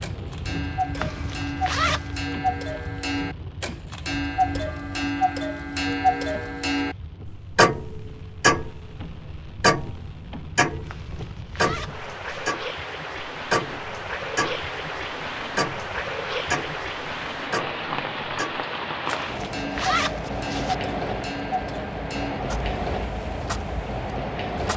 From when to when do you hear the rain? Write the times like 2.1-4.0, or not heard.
0.0-24.7.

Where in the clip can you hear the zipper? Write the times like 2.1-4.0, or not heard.
0.9-2.1, 10.8-12.6, 19.1-20.8.